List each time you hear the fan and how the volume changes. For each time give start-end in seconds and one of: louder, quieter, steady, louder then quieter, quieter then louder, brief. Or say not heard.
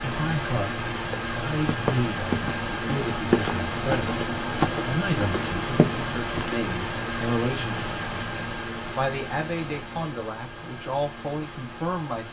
0.0-12.2 quieter.